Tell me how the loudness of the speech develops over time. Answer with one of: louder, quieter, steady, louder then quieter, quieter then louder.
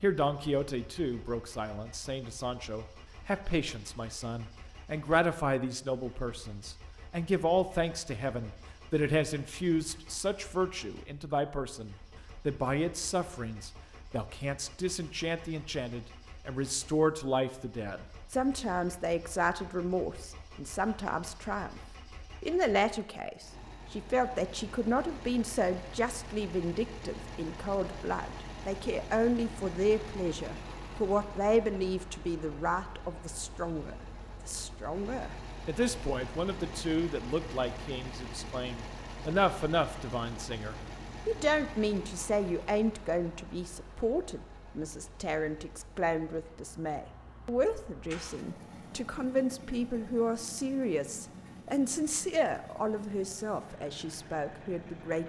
steady.